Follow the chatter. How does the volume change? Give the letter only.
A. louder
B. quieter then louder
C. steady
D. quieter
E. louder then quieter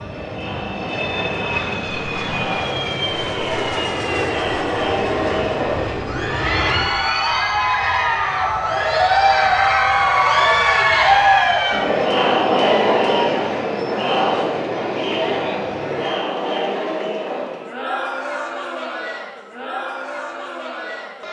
E.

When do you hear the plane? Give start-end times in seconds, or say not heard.
0.0-16.1.